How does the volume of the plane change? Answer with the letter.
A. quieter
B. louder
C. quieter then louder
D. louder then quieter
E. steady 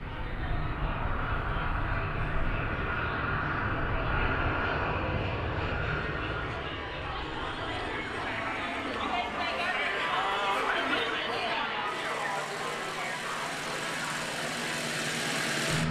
C.